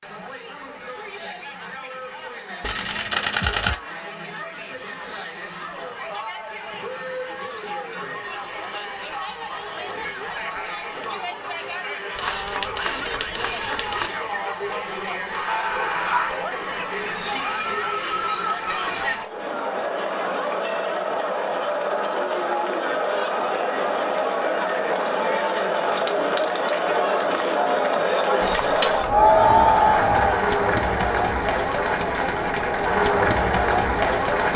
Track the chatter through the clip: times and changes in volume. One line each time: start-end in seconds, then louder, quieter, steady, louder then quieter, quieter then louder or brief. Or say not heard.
0.0-34.5 louder.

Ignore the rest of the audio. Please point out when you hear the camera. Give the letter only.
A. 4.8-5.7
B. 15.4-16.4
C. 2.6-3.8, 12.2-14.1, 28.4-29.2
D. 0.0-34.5
C.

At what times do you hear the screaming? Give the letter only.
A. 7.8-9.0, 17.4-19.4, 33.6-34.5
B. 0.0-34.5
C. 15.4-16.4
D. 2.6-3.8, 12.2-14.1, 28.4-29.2
C.